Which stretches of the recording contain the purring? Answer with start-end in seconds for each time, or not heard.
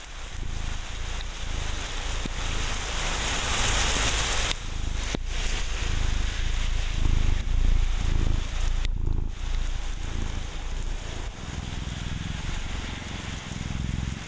0.1-14.2.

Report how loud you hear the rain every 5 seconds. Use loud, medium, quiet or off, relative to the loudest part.
loud, medium, medium.